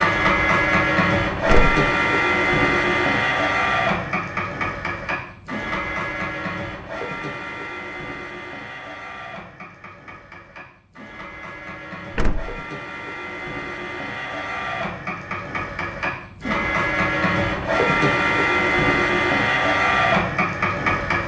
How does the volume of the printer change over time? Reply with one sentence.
The loudness of the printer goes down, then up.